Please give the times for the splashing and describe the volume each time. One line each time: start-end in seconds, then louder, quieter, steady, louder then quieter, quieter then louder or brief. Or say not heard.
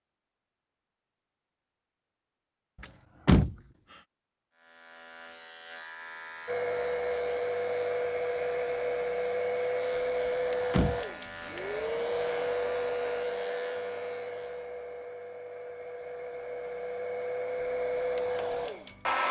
not heard.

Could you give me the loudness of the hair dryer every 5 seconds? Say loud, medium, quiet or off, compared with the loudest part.
off, loud, loud, loud.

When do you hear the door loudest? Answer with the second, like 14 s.
3 s.